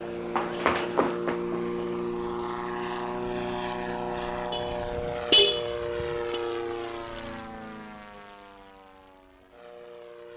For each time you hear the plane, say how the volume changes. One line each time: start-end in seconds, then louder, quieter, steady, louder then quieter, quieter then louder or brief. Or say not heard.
0.0-10.3 quieter.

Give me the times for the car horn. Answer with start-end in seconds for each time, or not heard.
4.5-6.4.